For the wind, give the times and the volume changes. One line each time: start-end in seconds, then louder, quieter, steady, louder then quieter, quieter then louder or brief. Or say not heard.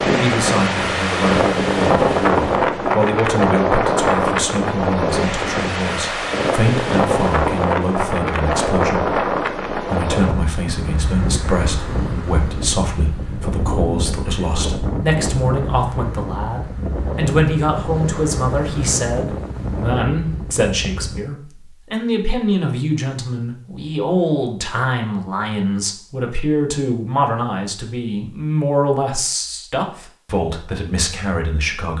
0.0-21.2 quieter.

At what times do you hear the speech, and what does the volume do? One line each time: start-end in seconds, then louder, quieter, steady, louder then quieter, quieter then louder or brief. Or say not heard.
0.1-31.9 steady.